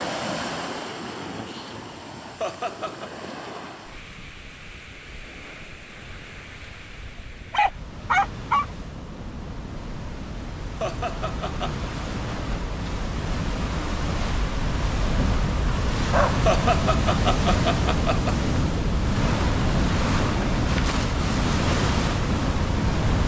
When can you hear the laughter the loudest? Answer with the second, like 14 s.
17 s.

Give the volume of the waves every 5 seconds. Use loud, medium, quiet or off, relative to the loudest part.
medium, quiet, medium, loud, loud.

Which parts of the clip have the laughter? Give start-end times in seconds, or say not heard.
2.4-3.1, 10.8-11.8, 16.4-18.4.